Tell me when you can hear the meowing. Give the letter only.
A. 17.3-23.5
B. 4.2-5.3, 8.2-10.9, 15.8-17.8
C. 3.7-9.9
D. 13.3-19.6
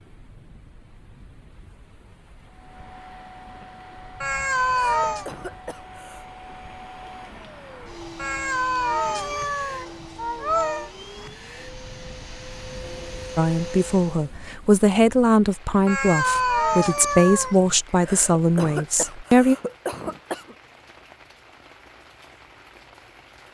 B.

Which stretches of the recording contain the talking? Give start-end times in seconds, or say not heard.
13.3-19.6.